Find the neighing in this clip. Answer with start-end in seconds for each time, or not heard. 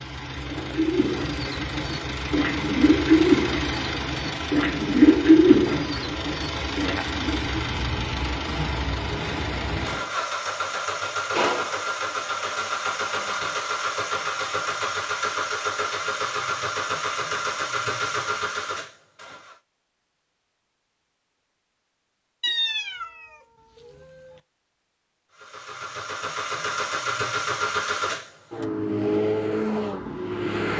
not heard.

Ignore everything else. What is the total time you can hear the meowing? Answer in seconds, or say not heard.
3 s.